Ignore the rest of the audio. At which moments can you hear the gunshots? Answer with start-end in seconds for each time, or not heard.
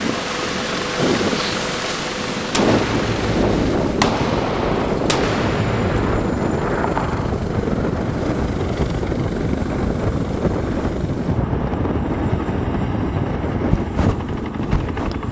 2.5-6.3.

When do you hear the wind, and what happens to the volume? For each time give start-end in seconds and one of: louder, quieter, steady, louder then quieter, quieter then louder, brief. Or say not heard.
0.0-15.2 steady.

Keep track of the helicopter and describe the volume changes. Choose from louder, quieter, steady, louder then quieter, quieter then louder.
steady.